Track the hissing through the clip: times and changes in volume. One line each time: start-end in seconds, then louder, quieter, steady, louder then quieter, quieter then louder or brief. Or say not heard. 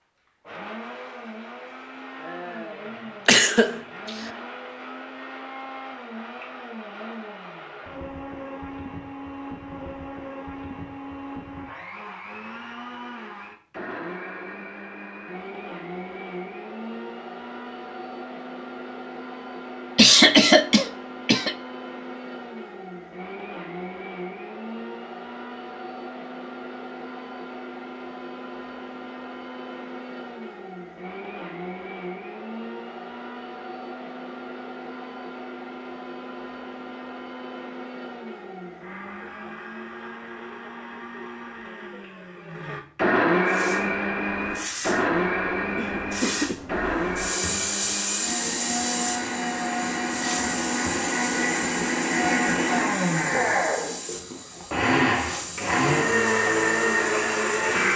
43.5-57.9 louder then quieter.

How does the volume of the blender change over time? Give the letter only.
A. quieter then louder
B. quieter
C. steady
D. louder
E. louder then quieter
D.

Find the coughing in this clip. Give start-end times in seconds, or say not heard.
3.2-4.1, 19.9-21.6, 45.8-46.6.